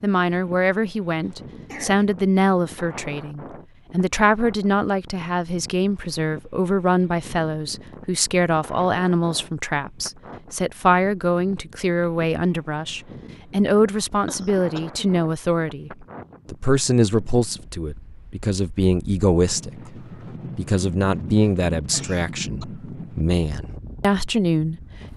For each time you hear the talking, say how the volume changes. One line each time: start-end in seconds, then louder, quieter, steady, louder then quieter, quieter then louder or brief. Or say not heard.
0.0-25.1 steady.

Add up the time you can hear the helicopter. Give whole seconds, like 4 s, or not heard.
not heard.